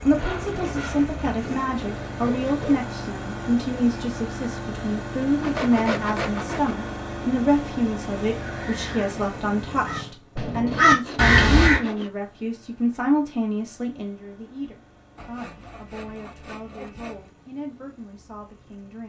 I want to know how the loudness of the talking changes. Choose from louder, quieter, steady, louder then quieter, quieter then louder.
quieter.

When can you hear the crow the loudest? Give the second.
11 s.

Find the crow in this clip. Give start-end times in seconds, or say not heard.
8.4-11.8.